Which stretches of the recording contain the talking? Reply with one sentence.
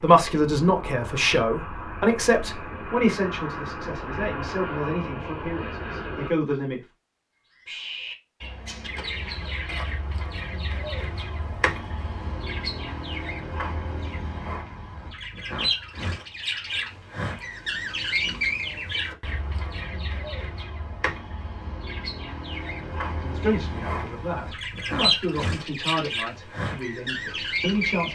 The talking can be heard from 0.0 to 6.8 s and from 23.1 to 28.1 s.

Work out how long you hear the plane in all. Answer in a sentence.
You can hear the plane for 6 seconds altogether.